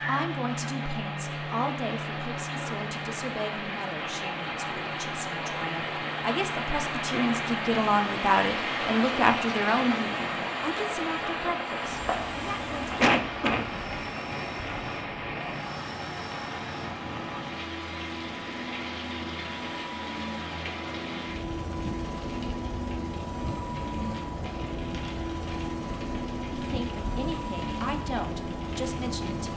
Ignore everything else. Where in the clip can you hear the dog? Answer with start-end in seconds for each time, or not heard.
not heard.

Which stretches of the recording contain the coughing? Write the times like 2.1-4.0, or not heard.
12.9-13.7.